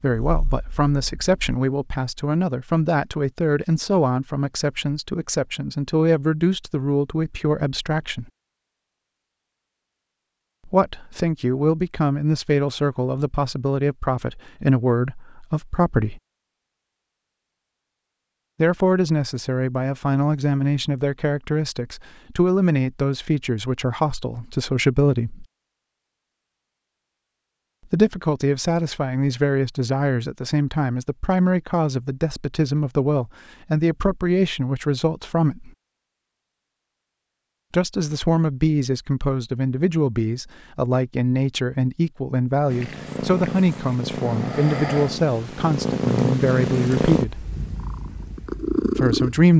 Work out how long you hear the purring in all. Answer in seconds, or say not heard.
8 s.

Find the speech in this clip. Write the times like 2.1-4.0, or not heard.
0.0-8.2, 10.7-16.2, 18.6-25.4, 27.9-35.7, 37.7-47.5, 49.0-49.5.